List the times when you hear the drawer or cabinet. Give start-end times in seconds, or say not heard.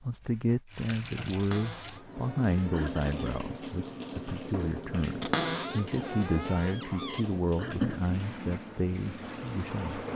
1.4-3.4, 5.2-7.2.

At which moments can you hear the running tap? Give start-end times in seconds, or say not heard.
0.1-10.1.